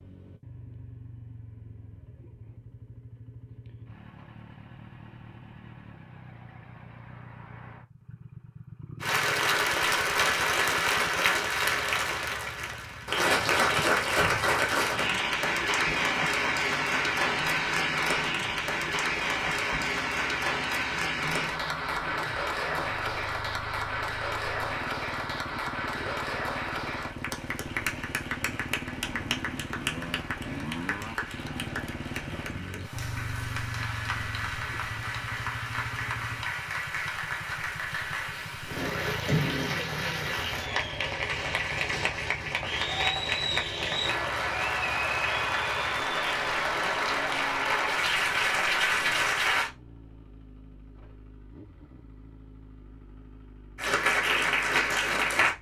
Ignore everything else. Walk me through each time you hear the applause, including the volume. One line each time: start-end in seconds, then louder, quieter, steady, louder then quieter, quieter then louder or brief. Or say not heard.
9.0-49.7 quieter then louder
53.8-55.5 brief.